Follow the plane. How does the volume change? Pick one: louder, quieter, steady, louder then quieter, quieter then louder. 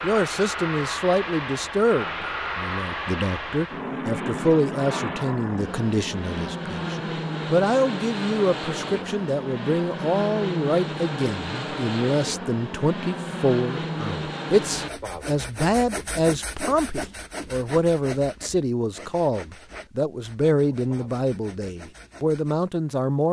steady.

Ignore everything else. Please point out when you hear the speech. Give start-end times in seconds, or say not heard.
0.0-23.2.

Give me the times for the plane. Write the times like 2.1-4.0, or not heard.
0.0-14.9.